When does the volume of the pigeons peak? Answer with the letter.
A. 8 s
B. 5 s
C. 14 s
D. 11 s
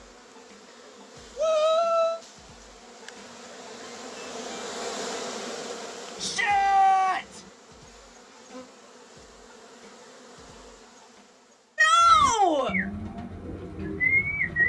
C.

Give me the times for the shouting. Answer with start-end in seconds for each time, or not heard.
1.4-2.2, 6.2-7.4, 11.8-12.8.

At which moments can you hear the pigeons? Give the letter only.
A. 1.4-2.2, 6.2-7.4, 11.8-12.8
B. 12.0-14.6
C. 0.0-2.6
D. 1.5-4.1
B.